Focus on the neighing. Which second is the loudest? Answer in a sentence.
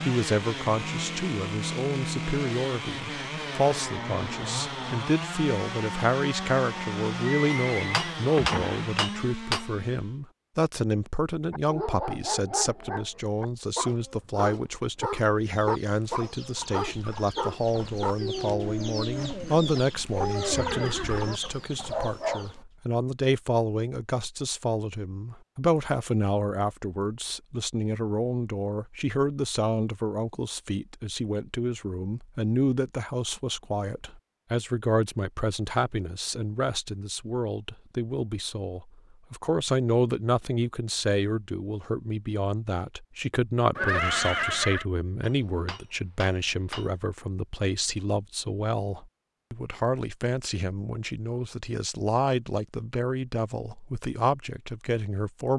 The volume of the neighing peaks at 44 seconds.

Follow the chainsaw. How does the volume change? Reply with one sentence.
The volume of the chainsaw stays about the same.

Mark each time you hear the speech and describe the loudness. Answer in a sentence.
You can hear the speech from 0.0 to 55.5 s, at a steady volume.